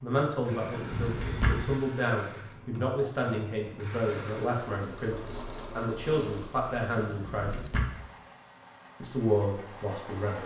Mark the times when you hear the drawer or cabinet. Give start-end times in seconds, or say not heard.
0.6-1.8, 7.0-8.1.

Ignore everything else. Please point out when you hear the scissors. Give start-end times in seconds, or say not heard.
0.9-1.8, 7.0-7.7.